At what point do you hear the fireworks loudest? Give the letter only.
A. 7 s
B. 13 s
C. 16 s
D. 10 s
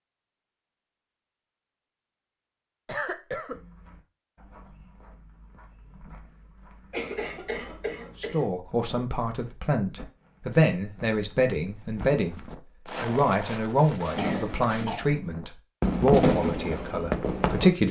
C.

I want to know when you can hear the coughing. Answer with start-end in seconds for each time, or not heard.
2.9-3.5, 6.9-8.5, 13.8-15.1.